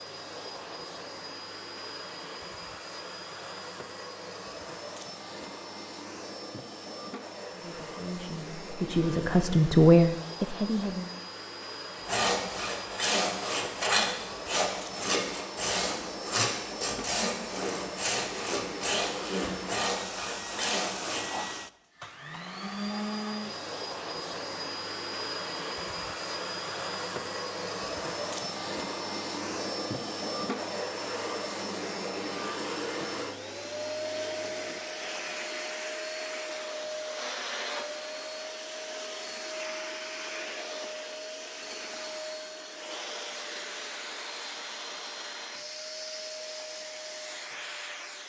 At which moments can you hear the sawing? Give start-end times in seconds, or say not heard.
12.0-21.2.